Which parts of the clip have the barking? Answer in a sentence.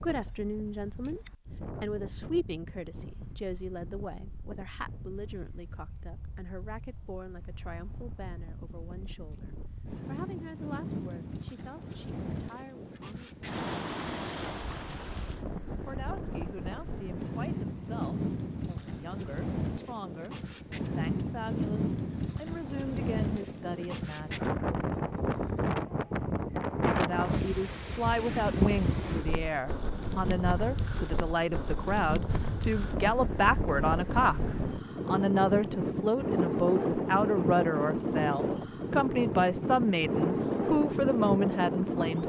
You can't hear the barking here.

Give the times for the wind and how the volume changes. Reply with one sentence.
The wind can be heard from 0.0 to 42.2 s, getting louder.